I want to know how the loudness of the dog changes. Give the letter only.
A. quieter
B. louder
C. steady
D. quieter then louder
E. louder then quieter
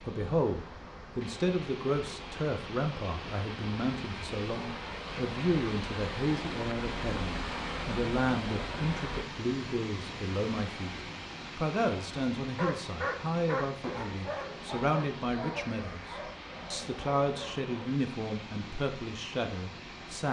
A.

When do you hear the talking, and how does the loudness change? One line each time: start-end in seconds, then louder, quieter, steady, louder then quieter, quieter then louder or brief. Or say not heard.
0.0-20.2 steady.